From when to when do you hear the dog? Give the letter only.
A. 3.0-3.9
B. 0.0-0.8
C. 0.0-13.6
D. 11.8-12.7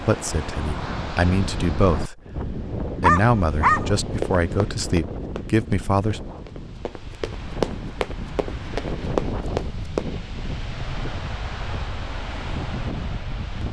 A.